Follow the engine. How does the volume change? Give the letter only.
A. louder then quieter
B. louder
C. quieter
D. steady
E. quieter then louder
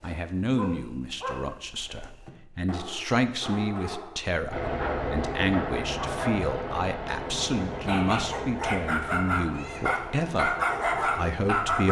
C.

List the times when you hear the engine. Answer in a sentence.
You can hear the engine from 4.5 to 11.8 s.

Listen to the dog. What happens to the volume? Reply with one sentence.
The volume of the dog goes up.